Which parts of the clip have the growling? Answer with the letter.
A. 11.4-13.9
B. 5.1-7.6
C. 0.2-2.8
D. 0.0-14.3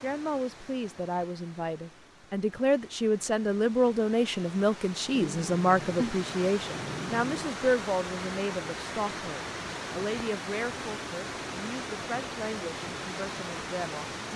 B.